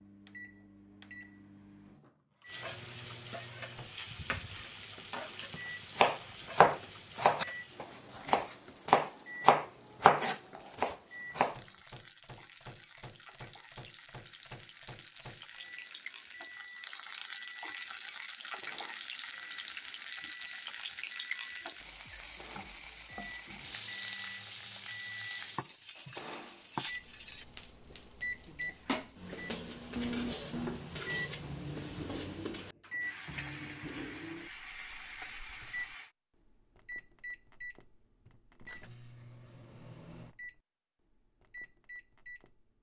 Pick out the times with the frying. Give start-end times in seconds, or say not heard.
2.5-36.1.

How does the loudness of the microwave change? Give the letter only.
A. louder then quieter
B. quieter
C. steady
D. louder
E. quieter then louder
A.